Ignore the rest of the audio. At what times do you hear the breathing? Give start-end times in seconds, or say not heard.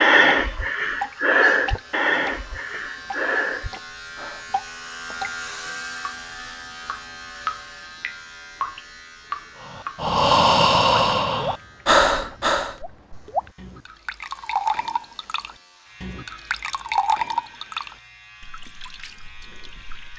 0.0-4.5, 9.6-12.8.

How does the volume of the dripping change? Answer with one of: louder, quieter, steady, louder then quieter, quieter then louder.
louder then quieter.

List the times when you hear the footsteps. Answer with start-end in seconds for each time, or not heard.
not heard.